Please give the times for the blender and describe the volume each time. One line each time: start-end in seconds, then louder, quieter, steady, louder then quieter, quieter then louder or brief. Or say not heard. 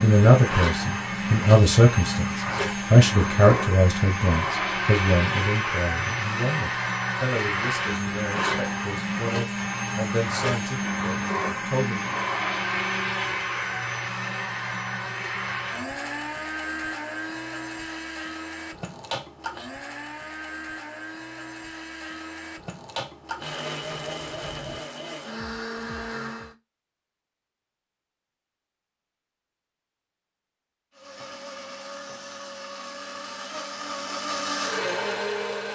0.0-26.6 quieter
30.9-35.6 louder.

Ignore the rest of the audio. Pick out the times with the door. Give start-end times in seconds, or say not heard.
23.8-24.9.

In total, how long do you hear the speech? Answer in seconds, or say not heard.
12 s.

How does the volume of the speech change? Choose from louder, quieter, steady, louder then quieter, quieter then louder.
quieter.